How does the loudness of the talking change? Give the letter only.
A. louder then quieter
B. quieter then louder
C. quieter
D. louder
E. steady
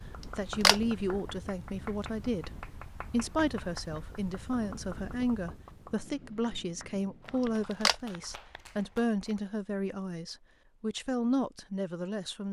E.